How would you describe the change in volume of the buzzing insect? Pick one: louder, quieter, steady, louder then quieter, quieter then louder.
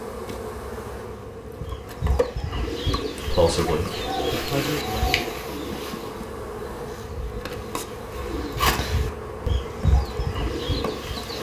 steady.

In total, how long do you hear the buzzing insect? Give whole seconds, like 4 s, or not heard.
11 s.